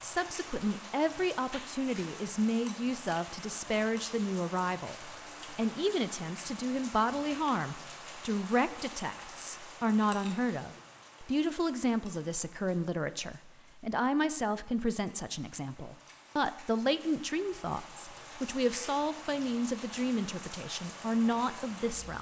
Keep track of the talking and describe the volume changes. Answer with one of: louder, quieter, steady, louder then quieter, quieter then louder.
steady.